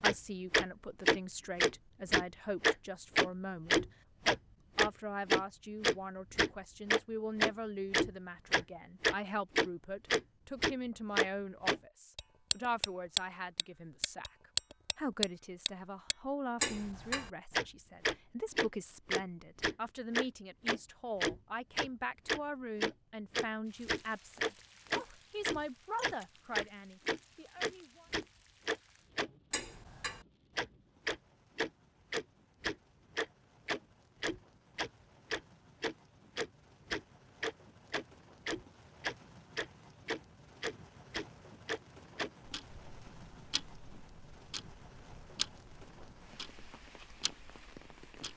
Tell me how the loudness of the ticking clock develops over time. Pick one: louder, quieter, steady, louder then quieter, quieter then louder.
quieter.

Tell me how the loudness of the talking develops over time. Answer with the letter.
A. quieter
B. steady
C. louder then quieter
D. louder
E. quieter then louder
B.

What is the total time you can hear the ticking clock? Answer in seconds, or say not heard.
48 s.